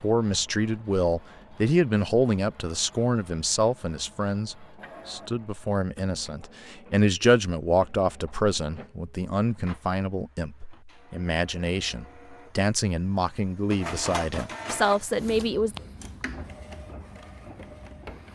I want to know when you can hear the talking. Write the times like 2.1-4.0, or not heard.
0.0-15.8.